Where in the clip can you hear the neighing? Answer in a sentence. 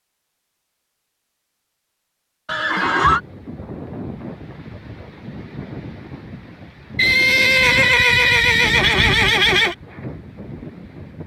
You can hear the neighing from 2.5 to 3.2 s and from 7.0 to 9.8 s.